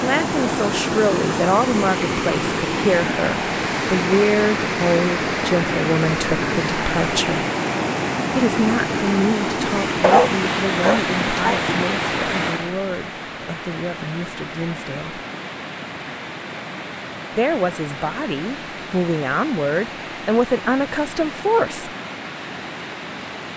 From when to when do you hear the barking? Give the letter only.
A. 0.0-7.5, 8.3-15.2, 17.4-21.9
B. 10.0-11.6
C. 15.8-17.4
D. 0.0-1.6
B.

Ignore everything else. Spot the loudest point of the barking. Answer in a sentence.
The loudest moment of the barking is at 10 seconds.